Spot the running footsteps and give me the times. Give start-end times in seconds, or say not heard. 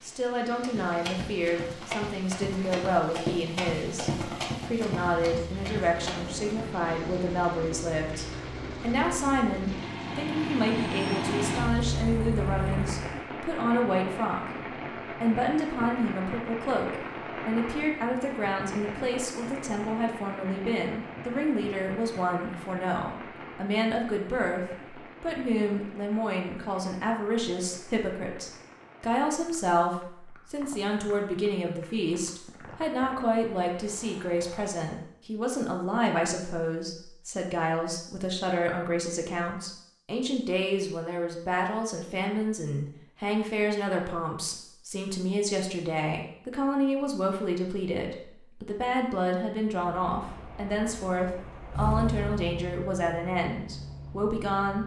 0.6-6.7.